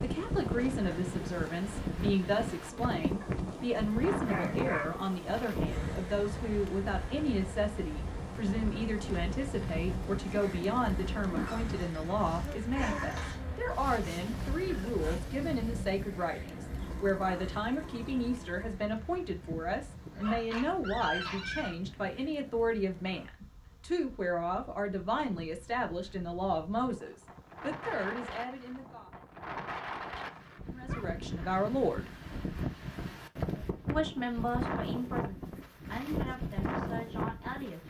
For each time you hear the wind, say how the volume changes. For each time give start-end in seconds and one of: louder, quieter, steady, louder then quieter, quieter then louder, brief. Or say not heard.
0.0-37.8 quieter then louder.